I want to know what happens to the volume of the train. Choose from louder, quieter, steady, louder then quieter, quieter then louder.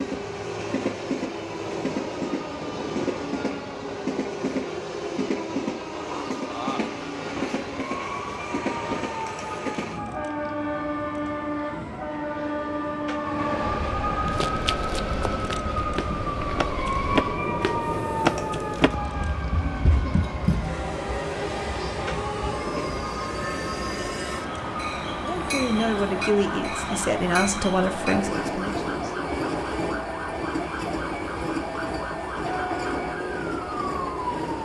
steady.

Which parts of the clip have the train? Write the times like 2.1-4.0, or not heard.
0.0-34.5.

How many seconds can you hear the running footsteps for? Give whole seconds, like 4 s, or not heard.
7 s.